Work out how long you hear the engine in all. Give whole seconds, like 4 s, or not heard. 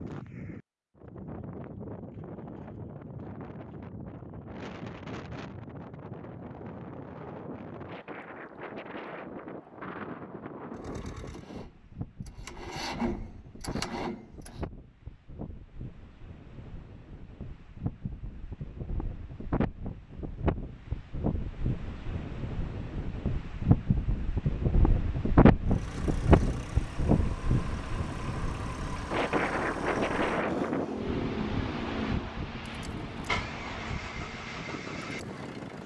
14 s.